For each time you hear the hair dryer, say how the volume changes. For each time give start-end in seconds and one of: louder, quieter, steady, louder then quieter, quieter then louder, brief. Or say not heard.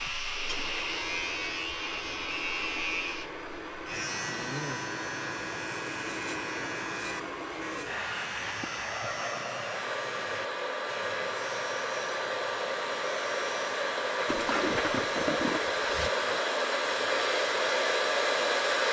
0.0-18.8 louder.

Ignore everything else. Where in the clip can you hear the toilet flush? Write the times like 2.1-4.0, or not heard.
0.1-0.8, 14.2-16.1.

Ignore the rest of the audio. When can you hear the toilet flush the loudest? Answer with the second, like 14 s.
15 s.